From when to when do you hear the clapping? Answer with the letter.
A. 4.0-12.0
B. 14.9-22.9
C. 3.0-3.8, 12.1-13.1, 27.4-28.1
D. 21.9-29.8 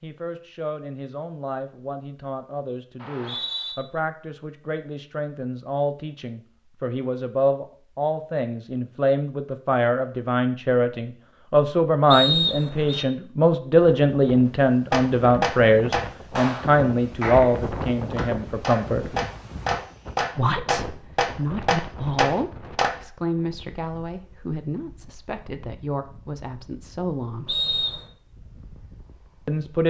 B.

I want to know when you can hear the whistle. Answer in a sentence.
You can hear the whistle from 3.0 to 3.8 s, from 12.1 to 13.1 s and from 27.4 to 28.1 s.